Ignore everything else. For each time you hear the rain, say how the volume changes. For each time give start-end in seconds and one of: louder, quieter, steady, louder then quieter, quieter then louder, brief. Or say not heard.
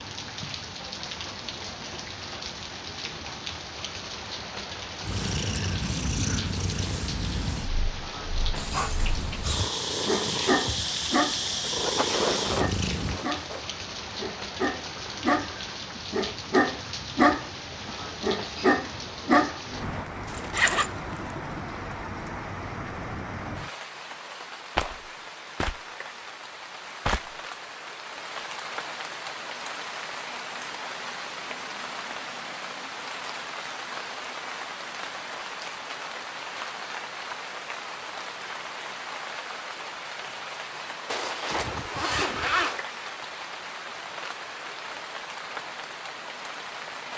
0.0-47.1 steady.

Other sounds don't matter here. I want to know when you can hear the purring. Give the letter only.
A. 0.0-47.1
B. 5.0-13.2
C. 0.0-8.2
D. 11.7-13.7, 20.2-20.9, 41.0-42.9
B.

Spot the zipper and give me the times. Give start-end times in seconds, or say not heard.
11.7-13.7, 20.2-20.9, 41.0-42.9.